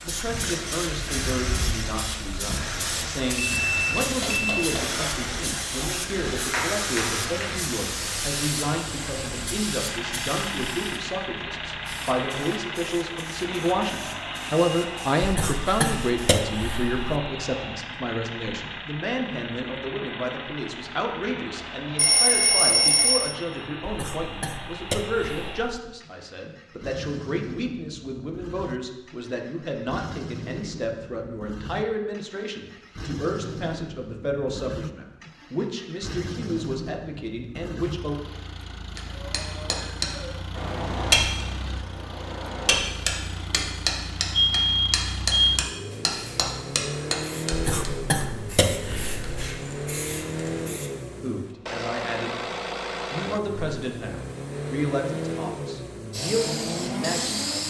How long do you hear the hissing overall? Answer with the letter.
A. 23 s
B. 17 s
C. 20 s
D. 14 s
A.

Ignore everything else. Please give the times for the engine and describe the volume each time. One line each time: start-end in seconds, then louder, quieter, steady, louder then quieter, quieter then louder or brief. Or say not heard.
0.0-57.6 quieter then louder.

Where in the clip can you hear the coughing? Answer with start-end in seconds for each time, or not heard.
15.2-17.1, 23.8-25.6, 47.5-49.4.